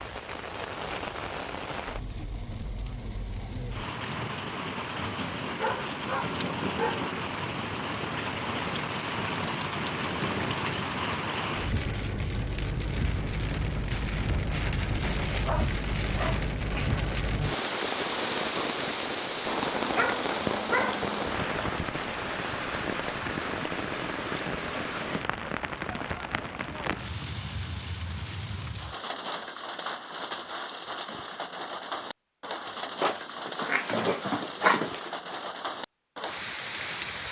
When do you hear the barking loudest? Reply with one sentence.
The volume of the barking peaks at 35 seconds.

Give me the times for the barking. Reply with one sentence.
You can hear the barking from 5.5 to 7.1 s, from 15.4 to 17.0 s, from 19.9 to 21.1 s and from 33.0 to 35.1 s.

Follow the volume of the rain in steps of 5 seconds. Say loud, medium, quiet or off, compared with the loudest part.
medium, loud, loud, loud, loud, medium, medium, medium.